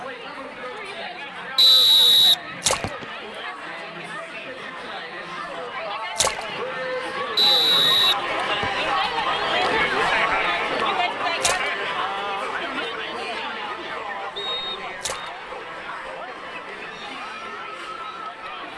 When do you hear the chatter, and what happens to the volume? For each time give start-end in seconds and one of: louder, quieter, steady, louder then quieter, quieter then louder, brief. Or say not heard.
0.0-18.7 louder then quieter.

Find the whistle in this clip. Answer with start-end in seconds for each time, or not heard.
1.6-3.0, 7.3-8.8, 14.3-15.3.